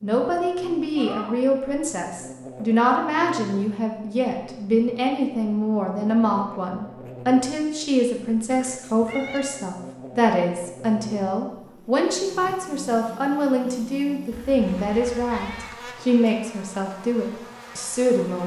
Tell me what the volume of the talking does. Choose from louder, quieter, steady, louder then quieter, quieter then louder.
steady.